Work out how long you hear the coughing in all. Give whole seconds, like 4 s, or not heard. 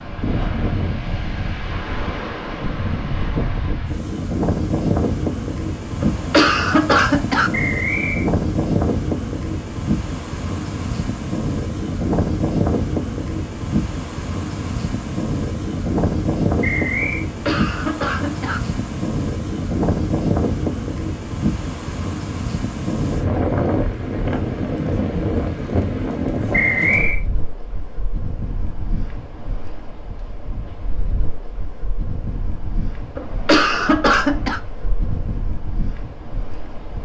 4 s.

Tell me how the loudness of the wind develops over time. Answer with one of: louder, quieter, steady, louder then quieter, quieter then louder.
quieter.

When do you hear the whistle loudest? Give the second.
27 s.